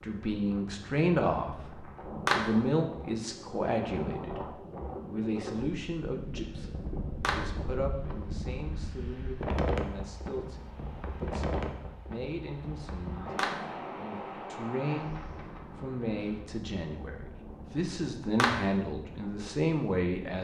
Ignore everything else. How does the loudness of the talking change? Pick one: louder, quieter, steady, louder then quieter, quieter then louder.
quieter then louder.